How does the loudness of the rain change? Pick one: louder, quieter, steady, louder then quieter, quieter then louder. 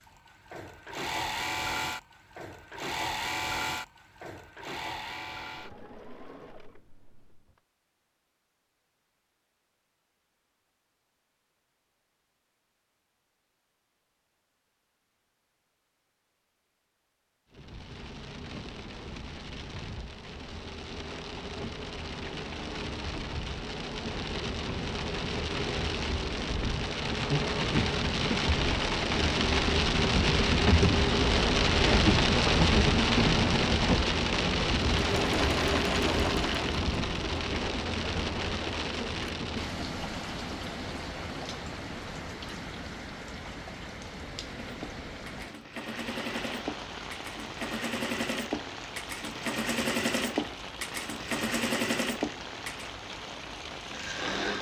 louder then quieter.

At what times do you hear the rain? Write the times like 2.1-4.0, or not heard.
17.5-54.5.